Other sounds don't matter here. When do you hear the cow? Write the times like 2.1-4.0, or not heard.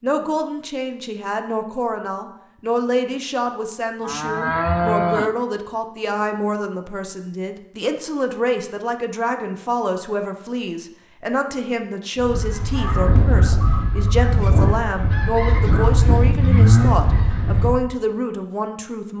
4.0-5.3, 15.4-17.0.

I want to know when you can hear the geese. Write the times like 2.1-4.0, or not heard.
12.2-17.9.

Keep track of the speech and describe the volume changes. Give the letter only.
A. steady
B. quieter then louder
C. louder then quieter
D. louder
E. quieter
A.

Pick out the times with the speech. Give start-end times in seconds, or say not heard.
0.0-19.1.